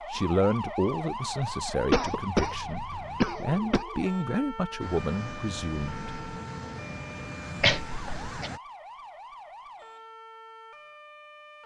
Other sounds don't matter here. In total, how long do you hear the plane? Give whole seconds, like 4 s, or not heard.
4 s.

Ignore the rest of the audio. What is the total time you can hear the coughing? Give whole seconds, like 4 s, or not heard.
3 s.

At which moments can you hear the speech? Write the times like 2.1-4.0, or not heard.
0.0-6.2.